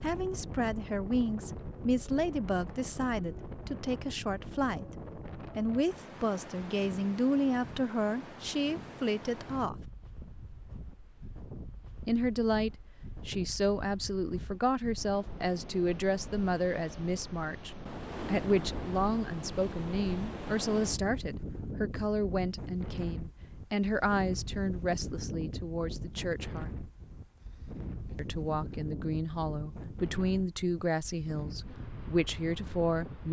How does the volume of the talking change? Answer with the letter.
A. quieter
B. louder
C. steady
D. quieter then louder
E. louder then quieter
C.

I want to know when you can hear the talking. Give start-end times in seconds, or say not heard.
0.0-9.8, 12.1-26.7, 28.1-33.2.